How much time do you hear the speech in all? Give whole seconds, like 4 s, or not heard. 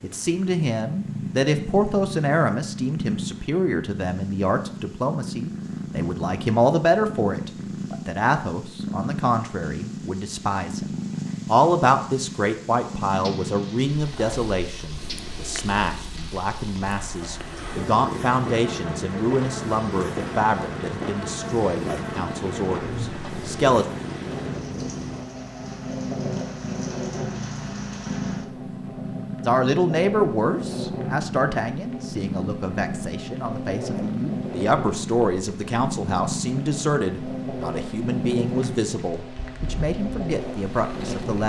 36 s.